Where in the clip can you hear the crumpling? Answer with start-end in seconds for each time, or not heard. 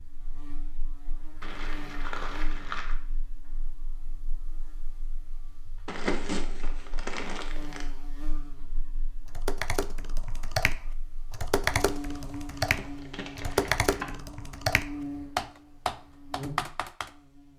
1.4-3.0, 5.8-7.8, 12.6-14.1.